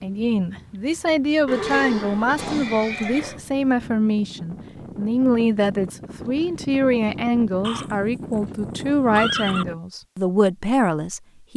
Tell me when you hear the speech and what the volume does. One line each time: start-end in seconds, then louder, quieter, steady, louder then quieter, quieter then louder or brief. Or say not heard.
0.0-11.5 steady.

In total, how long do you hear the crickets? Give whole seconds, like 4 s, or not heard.
not heard.